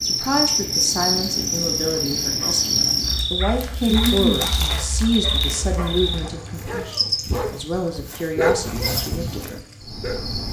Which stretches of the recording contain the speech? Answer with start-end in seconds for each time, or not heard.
0.0-9.6.